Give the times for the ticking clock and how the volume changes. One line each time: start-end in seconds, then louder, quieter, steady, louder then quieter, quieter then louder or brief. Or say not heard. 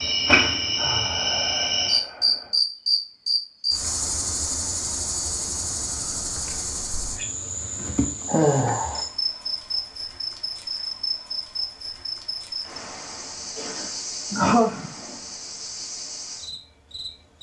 not heard.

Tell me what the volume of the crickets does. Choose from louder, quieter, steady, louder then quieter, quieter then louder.
quieter.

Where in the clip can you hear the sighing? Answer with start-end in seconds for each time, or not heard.
0.8-2.6, 8.2-9.0, 13.6-15.1.